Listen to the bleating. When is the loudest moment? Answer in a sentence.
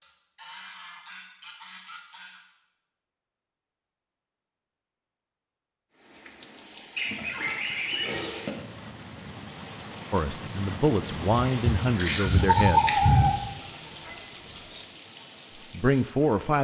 The loudest moment of the bleating is at 13 seconds.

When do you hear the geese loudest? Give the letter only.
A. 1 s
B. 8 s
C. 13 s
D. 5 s
B.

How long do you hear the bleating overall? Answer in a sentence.
The bleating can be heard for 2 seconds in total.